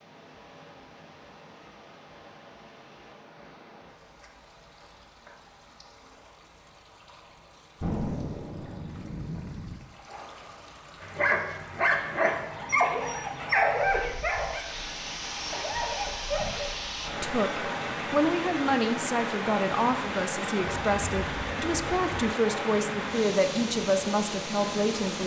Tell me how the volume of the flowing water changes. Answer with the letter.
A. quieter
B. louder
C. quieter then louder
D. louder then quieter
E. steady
B.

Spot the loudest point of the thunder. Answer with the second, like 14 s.
8 s.